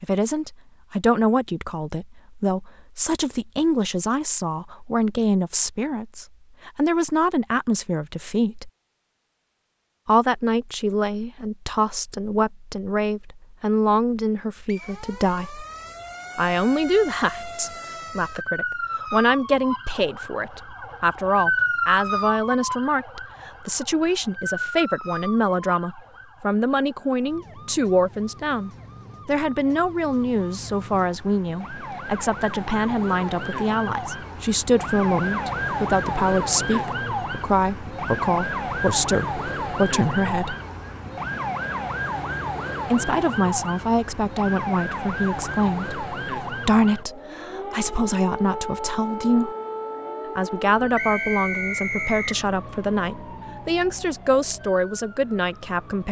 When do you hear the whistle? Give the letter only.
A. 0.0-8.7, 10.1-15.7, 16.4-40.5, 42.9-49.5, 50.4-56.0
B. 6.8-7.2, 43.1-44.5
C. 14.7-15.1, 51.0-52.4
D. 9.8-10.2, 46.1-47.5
C.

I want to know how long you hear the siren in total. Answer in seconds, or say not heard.
41 s.